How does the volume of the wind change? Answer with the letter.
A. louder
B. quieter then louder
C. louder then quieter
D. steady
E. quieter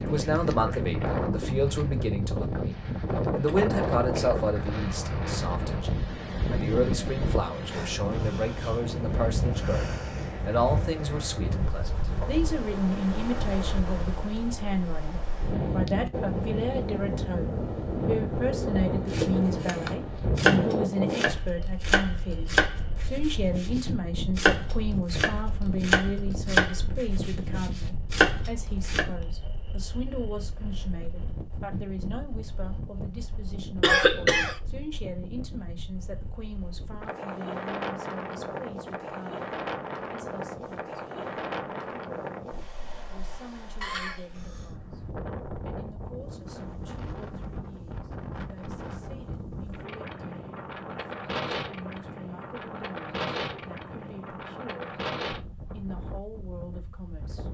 E.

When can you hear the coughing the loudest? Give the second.
34 s.